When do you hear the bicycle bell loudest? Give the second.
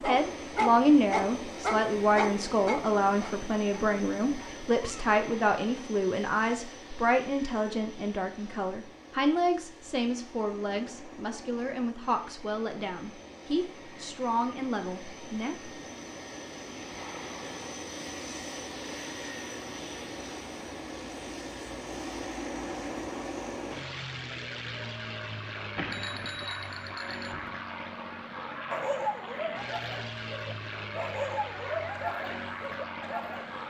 26 s.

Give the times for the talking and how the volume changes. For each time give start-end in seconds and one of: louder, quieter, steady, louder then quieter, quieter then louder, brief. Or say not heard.
0.0-15.7 quieter.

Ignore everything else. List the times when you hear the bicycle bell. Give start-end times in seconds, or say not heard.
25.8-27.6.